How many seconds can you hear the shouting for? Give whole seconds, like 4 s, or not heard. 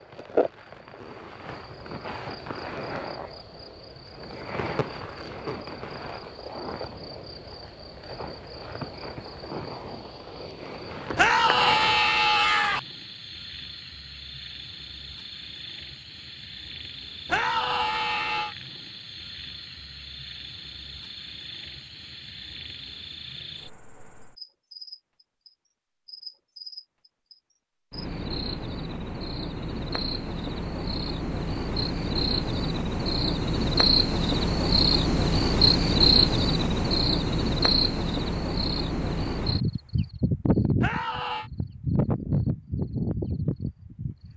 4 s.